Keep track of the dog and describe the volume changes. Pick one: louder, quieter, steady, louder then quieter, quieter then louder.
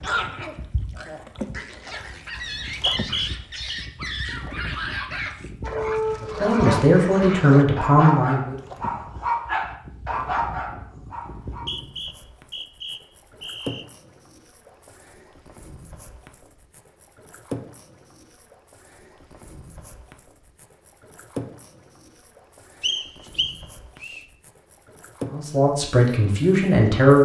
louder.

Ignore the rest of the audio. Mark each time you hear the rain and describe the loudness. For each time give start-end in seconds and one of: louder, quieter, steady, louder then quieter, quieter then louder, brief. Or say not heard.
not heard.